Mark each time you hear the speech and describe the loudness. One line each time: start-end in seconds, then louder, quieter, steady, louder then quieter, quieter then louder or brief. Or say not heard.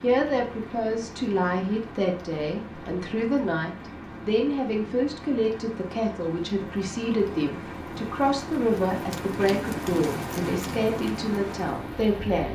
0.0-12.5 steady.